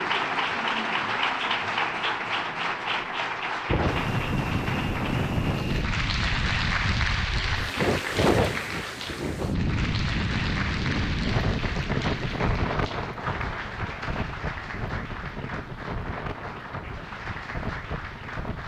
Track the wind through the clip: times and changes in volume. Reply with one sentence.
You can hear the wind from 3.6 to 18.6 s, getting quieter.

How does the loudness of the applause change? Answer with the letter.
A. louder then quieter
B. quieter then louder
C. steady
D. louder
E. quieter
E.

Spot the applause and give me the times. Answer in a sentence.
The applause can be heard from 0.0 to 18.6 s.